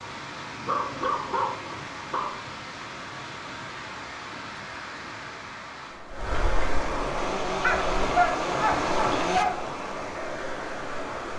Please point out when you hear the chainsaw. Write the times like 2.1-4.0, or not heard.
7.2-9.4.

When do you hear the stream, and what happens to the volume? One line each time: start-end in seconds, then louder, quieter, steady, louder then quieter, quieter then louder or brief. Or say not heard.
0.0-11.3 louder.